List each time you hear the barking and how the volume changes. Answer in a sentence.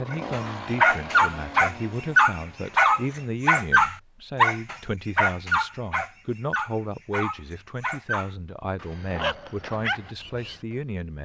You can hear the barking from 0.1 to 10.6 s, getting quieter.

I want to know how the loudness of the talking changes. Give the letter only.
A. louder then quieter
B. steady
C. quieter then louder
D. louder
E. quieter
B.